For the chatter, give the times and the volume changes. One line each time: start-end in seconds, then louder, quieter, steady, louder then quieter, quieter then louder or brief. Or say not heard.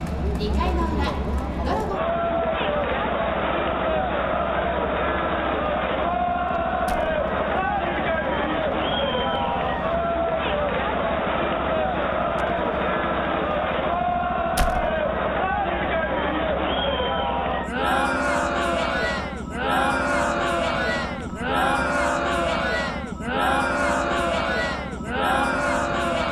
0.0-26.2 steady.